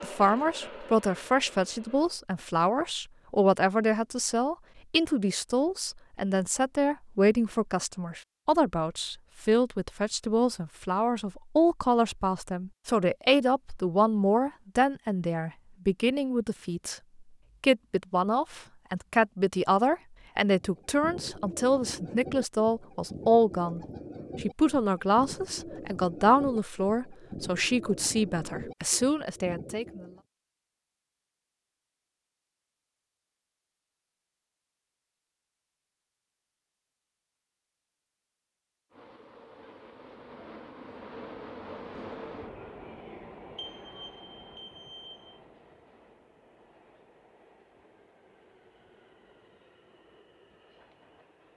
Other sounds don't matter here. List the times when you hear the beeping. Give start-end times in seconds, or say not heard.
43.5-45.4.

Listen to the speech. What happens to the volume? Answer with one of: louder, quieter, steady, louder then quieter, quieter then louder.
steady.